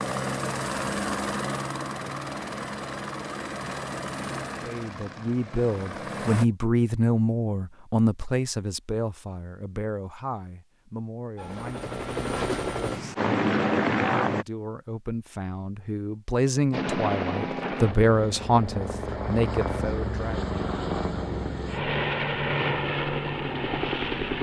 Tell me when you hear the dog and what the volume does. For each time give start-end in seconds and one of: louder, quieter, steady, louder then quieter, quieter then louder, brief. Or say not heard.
not heard.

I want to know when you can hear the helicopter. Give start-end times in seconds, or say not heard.
0.0-6.5, 11.3-14.4, 16.7-24.3.